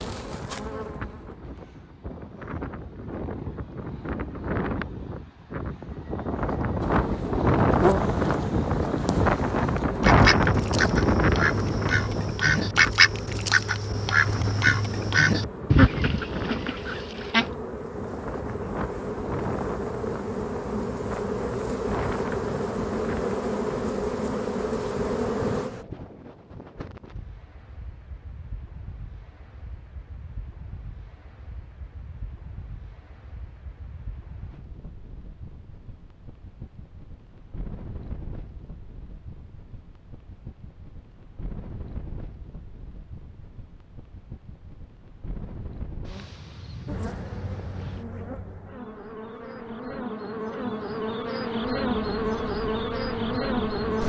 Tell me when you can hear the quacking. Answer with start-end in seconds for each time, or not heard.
10.0-17.5.